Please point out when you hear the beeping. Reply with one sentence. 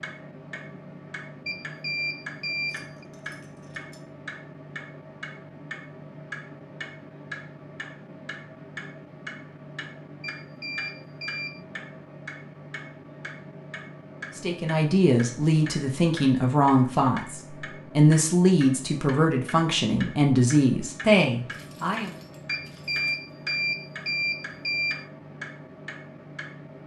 You can hear the beeping from 1.4 to 3.0 s, from 10.2 to 11.6 s and from 22.4 to 25.1 s.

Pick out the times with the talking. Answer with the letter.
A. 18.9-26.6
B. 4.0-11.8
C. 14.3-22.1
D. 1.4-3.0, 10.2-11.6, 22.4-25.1
C.